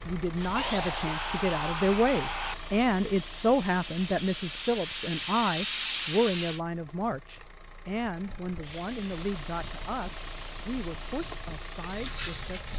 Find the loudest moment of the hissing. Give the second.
6 s.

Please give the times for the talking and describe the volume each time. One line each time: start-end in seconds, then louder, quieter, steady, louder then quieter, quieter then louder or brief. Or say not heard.
0.1-12.7 quieter.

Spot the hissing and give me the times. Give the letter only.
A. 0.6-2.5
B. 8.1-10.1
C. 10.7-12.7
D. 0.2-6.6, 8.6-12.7
D.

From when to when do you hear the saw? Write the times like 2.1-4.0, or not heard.
0.6-2.5.